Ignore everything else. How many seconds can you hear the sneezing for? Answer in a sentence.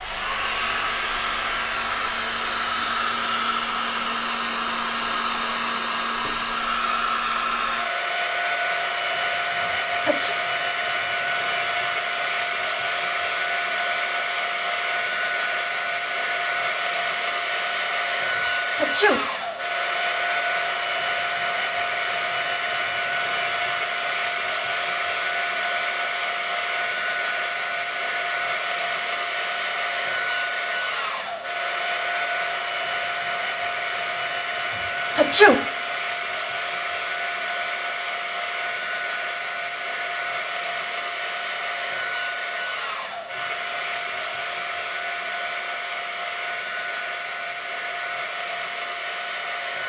The sneezing can be heard for 2 seconds in total.